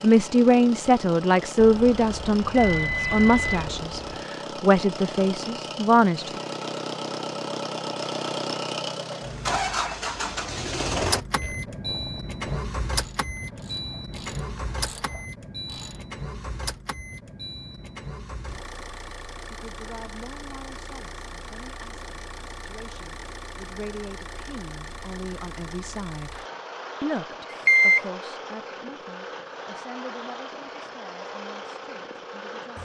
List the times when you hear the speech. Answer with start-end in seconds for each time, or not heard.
0.0-6.4, 19.5-26.4, 27.0-32.8.